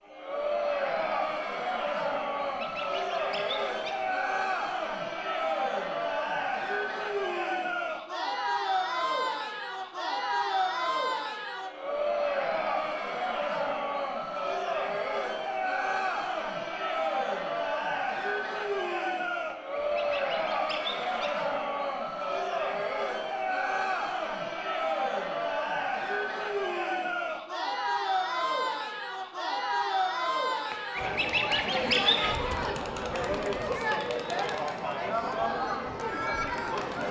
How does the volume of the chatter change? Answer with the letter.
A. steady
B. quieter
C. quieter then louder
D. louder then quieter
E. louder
A.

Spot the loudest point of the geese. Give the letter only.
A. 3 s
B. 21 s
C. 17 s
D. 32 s
D.